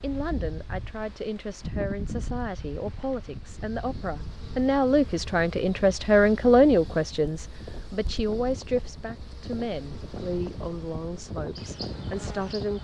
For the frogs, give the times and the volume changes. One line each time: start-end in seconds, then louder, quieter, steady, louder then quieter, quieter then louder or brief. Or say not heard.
not heard.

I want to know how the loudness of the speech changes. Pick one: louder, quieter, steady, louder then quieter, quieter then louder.
louder then quieter.